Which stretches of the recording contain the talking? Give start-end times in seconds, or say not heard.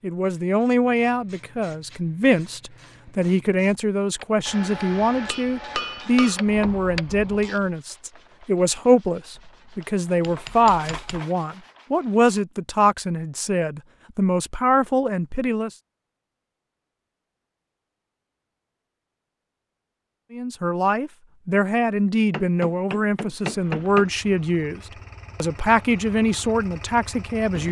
0.0-15.7, 20.3-24.8, 25.4-27.6.